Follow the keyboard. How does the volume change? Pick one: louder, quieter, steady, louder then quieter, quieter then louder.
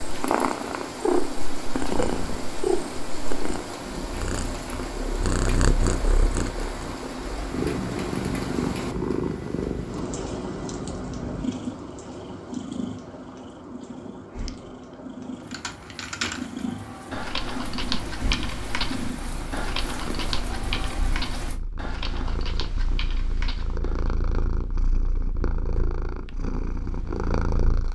quieter.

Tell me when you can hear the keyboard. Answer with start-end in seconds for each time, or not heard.
15.5-24.1.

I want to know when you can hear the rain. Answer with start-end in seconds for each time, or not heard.
0.0-21.6.